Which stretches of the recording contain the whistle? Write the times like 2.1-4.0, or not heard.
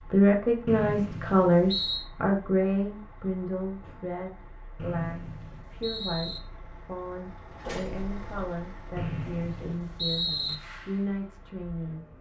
0.7-2.0, 4.8-6.4, 8.9-10.6.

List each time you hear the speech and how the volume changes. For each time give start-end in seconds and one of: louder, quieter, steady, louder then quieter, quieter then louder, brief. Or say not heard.
0.0-12.1 quieter.